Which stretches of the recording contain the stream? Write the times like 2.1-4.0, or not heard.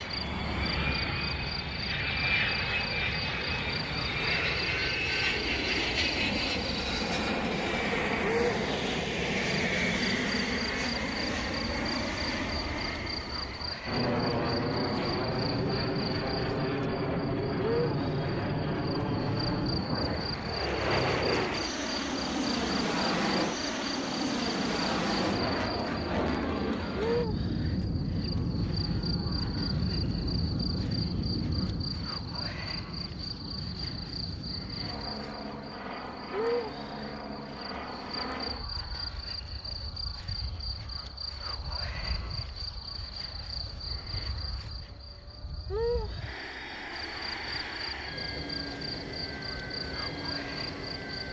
not heard.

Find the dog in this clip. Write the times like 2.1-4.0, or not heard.
not heard.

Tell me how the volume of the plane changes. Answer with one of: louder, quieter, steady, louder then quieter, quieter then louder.
quieter.